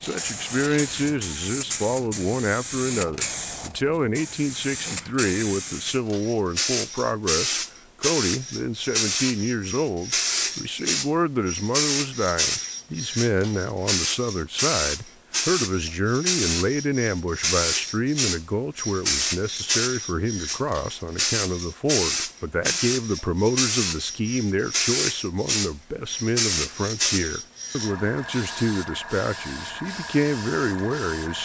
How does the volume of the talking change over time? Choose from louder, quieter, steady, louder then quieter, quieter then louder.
steady.